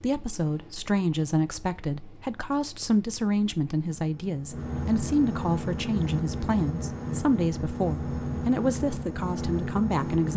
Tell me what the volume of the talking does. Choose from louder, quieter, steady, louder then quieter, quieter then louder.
steady.